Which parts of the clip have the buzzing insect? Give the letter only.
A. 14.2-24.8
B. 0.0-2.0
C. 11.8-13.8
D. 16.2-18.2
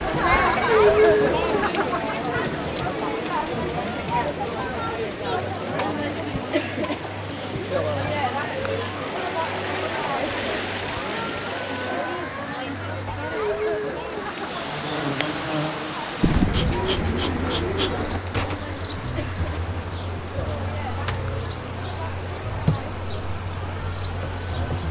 A.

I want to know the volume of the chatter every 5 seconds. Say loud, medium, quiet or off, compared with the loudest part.
loud, medium, medium, quiet, quiet.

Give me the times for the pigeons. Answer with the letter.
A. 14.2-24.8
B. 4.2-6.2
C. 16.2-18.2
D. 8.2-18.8
C.